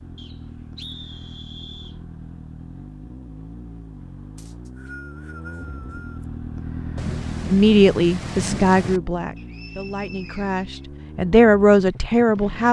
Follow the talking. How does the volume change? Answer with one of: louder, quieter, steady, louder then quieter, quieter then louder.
quieter then louder.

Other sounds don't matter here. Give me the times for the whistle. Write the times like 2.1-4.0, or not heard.
0.1-2.0, 4.3-6.2, 9.3-10.8.